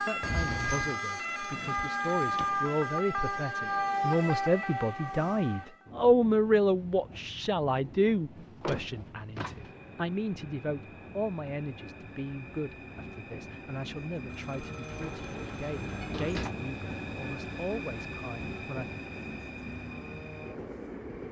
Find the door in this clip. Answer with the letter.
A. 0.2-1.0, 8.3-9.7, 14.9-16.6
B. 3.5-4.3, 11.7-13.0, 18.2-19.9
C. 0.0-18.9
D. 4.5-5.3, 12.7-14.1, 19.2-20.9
A.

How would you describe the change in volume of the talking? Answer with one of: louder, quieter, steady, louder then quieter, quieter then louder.
louder then quieter.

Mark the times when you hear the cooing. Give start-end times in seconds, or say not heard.
not heard.